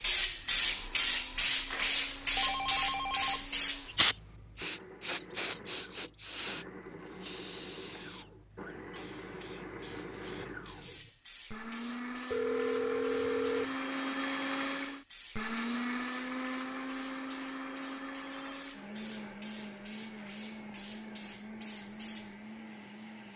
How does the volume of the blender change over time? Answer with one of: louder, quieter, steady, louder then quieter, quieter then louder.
louder then quieter.